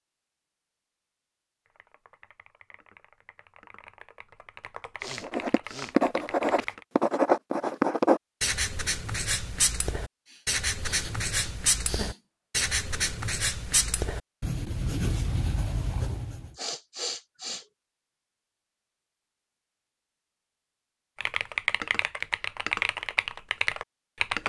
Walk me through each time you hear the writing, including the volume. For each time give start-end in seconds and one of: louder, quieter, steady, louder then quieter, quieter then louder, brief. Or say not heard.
5.2-16.5 quieter.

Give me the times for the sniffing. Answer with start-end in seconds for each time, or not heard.
5.0-6.0, 10.2-12.2, 16.6-17.6.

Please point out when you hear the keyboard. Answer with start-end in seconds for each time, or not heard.
1.6-6.8, 21.1-24.4.